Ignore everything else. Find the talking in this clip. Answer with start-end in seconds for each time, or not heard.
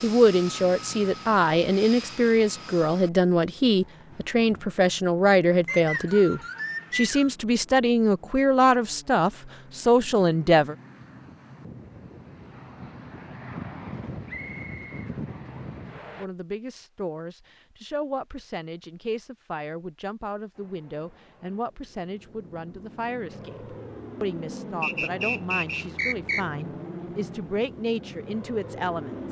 0.0-10.8, 16.1-29.2.